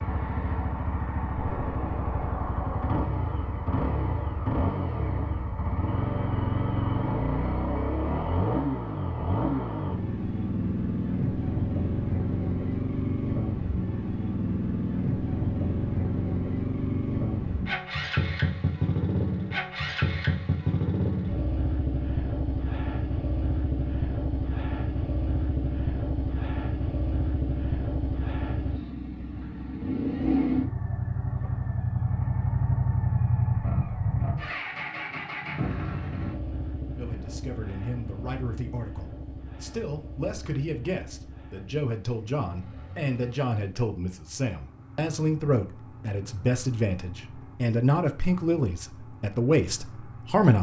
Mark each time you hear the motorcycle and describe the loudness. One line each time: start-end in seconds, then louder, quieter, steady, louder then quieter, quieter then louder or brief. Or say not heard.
0.0-50.5 quieter.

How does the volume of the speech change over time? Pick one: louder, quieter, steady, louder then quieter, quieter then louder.
louder.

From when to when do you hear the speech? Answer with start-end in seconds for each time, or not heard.
37.0-50.5.